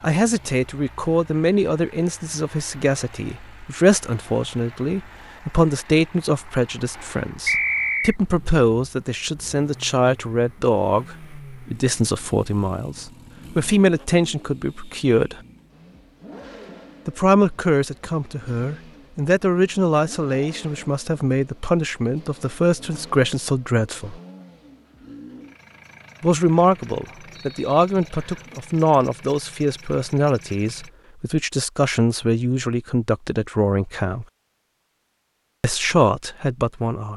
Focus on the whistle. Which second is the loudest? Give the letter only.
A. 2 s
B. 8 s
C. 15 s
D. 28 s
B.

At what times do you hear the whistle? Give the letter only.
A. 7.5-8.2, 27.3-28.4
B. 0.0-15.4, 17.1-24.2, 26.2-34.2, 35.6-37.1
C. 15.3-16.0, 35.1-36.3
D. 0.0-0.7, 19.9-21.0
A.